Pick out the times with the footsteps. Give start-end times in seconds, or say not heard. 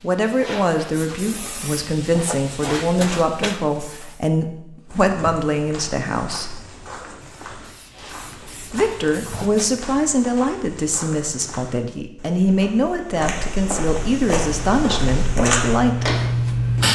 4.8-16.1.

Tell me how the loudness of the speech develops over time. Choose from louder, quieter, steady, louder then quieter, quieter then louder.
steady.